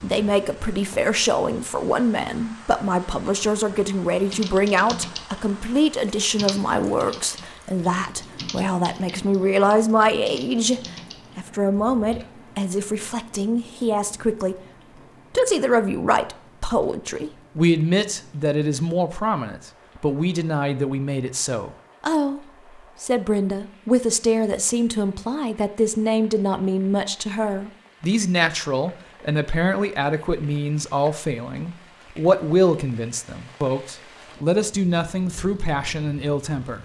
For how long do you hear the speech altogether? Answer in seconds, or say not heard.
36 s.